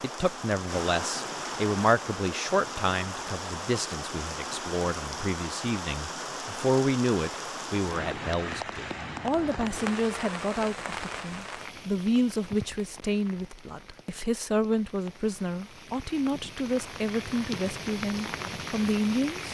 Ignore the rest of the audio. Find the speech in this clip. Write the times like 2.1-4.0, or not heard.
0.0-19.4.